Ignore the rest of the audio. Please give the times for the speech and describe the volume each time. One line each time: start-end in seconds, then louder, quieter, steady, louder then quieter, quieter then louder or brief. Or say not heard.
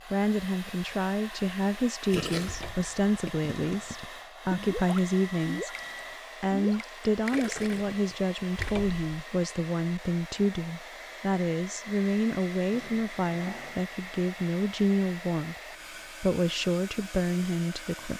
0.1-15.6 steady
16.2-18.1 brief.